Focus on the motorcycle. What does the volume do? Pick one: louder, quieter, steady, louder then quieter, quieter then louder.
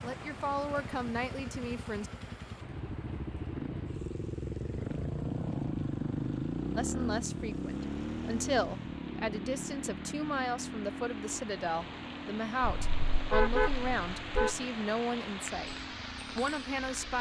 louder then quieter.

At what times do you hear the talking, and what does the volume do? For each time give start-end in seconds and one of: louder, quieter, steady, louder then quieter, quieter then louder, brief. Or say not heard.
0.0-2.1 brief
6.8-15.8 steady
16.4-17.1 brief.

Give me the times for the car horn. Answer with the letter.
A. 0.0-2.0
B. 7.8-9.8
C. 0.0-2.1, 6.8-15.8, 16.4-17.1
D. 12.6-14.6
D.